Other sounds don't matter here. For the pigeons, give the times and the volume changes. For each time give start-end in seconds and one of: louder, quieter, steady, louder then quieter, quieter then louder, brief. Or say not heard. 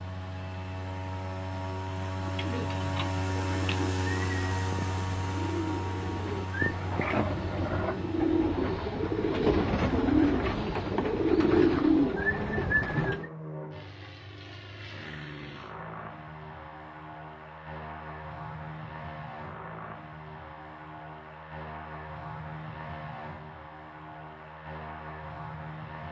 2.2-13.3 louder.